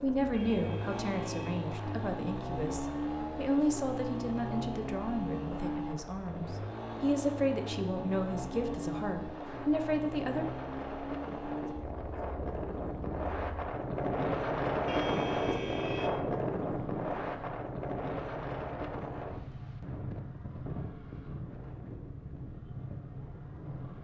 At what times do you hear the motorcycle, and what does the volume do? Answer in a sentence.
You can hear the motorcycle from 0.0 to 23.9 s, getting quieter.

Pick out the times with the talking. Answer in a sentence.
You can hear the talking from 0.0 to 10.4 s.